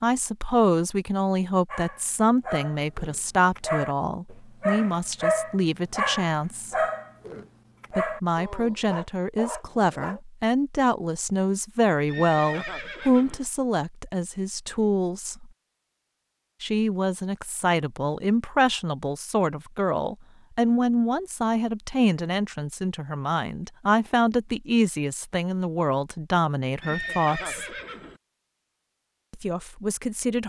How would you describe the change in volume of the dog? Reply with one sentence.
The loudness of the dog goes up, then down.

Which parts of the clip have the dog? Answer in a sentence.
The dog can be heard from 1.7 to 10.2 s.